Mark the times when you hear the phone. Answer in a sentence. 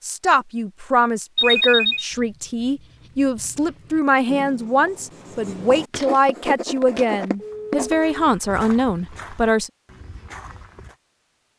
You can hear the phone from 1.4 to 2.0 s and from 7.3 to 8.1 s.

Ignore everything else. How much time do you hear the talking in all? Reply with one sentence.
The talking can be heard for 10 seconds in total.